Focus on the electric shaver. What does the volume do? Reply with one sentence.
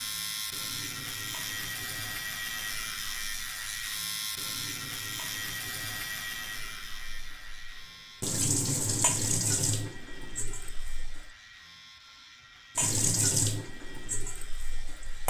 The loudness of the electric shaver goes down.